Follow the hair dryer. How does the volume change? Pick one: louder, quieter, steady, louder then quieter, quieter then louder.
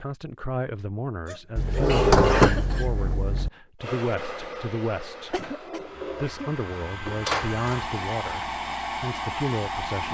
quieter then louder.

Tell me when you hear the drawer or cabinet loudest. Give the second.
2 s.